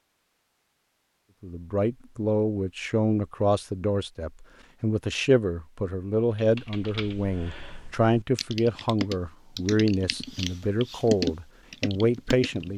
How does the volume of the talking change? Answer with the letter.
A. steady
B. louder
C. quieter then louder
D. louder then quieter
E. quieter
A.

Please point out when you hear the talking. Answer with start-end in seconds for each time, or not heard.
1.4-12.7.